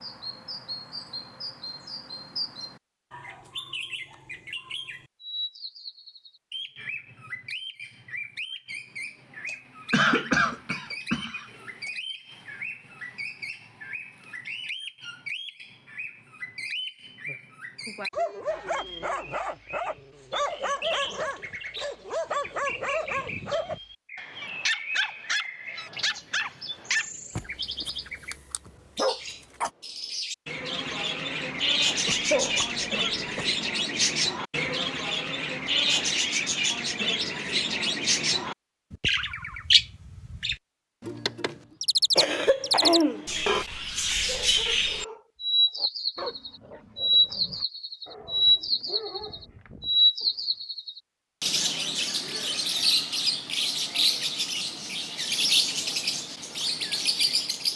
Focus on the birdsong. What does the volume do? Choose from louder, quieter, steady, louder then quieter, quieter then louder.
louder.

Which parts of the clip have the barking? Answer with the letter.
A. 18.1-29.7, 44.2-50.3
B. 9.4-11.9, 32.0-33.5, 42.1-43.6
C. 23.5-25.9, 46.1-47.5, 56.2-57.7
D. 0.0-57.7
A.